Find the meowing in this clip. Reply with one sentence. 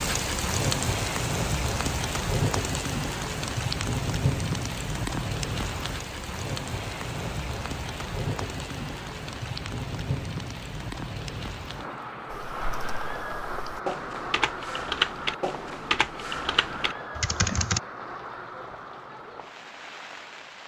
The meowing can't be heard in this clip.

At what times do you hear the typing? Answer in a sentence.
The typing can be heard from 12.3 to 17.8 s.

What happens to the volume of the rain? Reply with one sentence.
The loudness of the rain goes down.